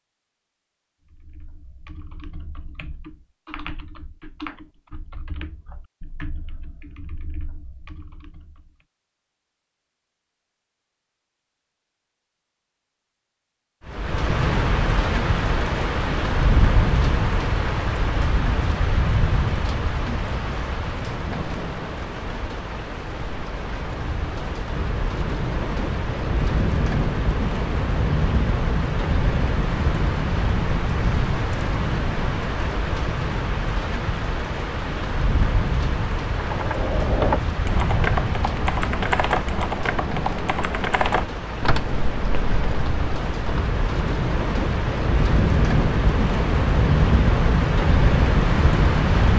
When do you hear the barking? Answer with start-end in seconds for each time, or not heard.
not heard.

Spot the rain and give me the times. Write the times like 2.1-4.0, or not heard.
13.8-49.3.